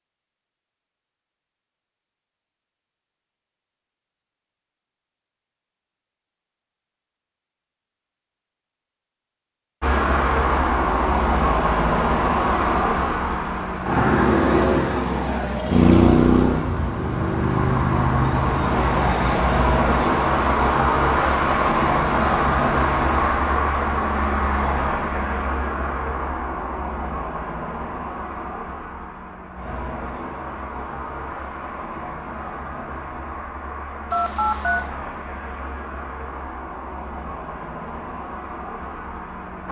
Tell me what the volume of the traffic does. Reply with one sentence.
The volume of the traffic goes down.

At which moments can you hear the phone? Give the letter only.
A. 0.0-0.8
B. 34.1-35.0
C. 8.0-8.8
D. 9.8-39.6
B.